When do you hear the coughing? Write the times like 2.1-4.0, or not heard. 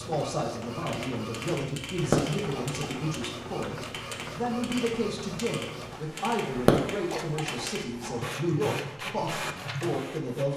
2.0-3.0, 6.5-8.2.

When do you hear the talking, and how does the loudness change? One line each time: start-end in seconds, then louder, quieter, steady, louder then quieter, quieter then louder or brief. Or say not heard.
0.0-10.5 steady.